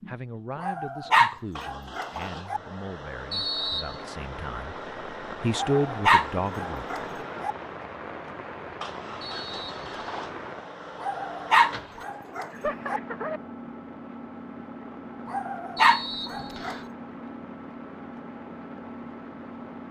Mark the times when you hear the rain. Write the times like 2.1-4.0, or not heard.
4.0-19.8.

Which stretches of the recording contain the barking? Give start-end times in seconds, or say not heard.
0.6-2.6, 5.5-7.5, 11.0-13.0, 15.2-16.8.